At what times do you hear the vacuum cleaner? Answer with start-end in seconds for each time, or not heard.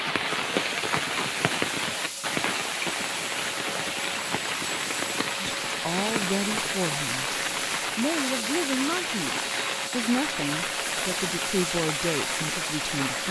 0.1-13.2.